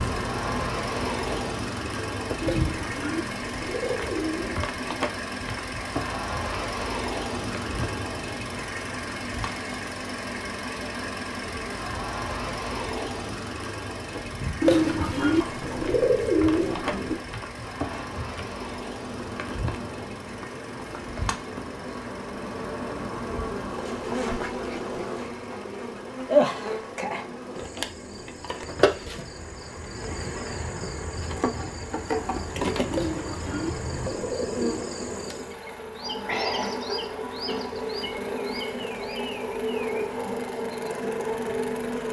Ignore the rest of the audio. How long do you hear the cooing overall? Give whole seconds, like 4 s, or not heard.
7 s.